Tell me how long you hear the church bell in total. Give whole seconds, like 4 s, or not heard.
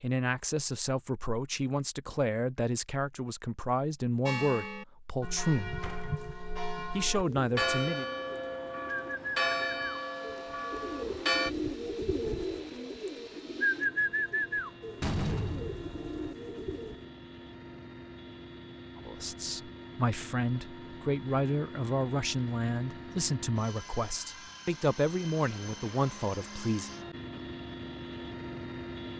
7 s.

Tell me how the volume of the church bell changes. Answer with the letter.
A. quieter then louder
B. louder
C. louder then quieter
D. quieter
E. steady
C.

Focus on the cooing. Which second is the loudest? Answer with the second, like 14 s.
14 s.